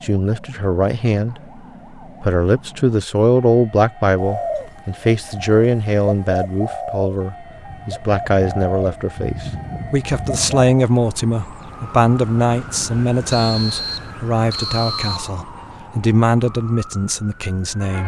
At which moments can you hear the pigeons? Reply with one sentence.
You can hear the pigeons from 4.2 to 10.7 s.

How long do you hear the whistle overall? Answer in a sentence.
You can hear the whistle for 2 seconds altogether.